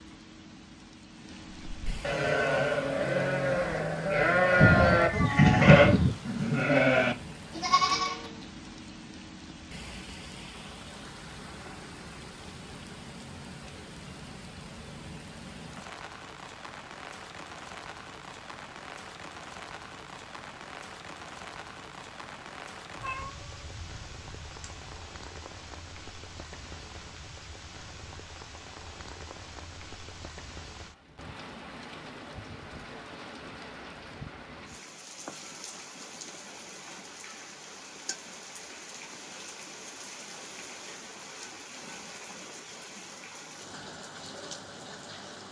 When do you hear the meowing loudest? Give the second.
6 s.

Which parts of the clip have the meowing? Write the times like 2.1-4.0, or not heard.
4.6-6.2, 22.9-25.0.